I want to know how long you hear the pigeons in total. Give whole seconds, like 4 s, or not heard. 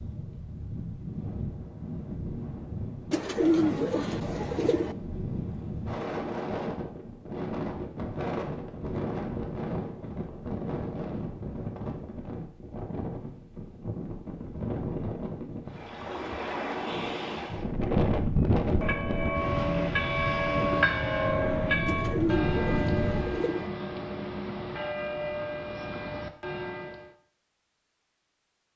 4 s.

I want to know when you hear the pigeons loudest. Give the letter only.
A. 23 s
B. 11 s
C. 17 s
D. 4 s
D.